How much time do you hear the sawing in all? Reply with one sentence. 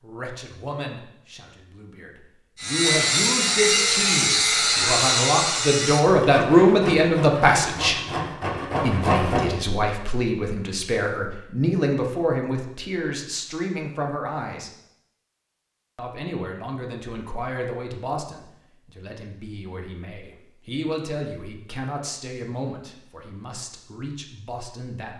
You can hear the sawing for 7 seconds altogether.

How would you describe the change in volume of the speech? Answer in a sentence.
The volume of the speech goes up, then down.